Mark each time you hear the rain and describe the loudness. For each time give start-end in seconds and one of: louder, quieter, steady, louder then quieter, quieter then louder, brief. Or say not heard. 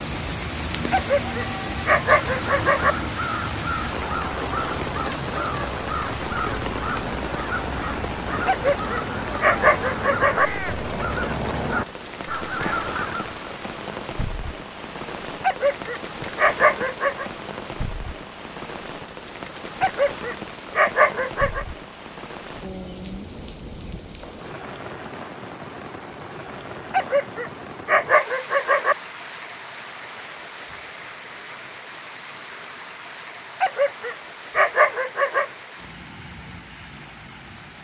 0.0-37.8 quieter.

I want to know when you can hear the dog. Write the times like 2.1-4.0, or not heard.
0.9-3.0, 8.4-10.5, 15.4-17.2, 19.8-21.6, 26.9-28.9, 33.6-35.5.